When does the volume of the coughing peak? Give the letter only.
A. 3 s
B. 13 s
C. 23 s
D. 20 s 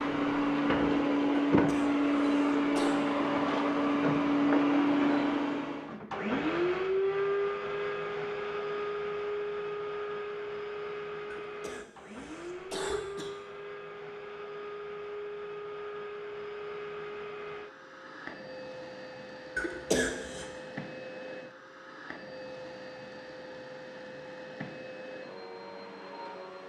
D.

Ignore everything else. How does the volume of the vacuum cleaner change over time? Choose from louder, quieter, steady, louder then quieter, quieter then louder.
quieter.